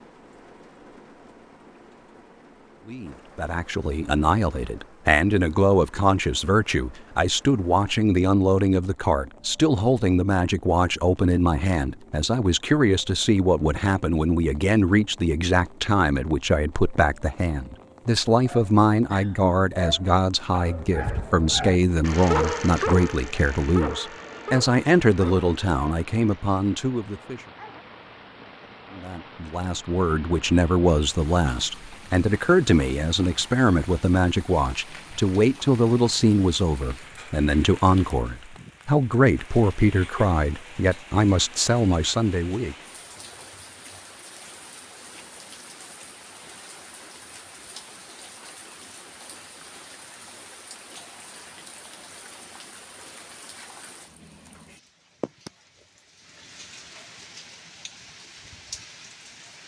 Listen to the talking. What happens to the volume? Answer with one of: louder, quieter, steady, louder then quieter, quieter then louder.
steady.